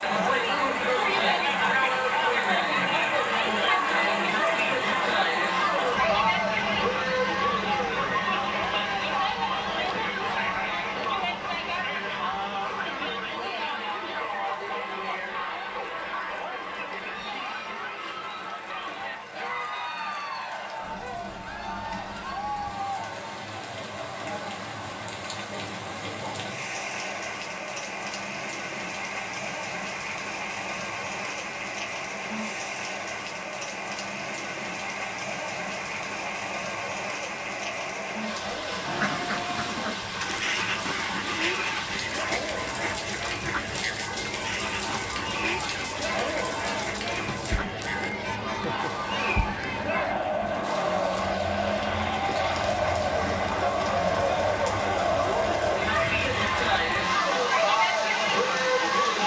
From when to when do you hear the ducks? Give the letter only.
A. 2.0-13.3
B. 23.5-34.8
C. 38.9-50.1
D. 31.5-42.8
C.